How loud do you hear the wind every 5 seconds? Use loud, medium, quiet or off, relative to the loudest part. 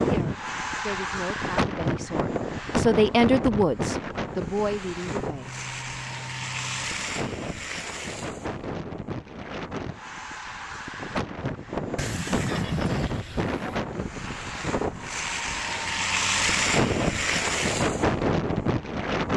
loud, medium, medium, loud.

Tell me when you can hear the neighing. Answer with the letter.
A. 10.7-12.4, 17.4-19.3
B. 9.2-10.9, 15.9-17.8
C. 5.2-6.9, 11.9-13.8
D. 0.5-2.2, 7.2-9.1
C.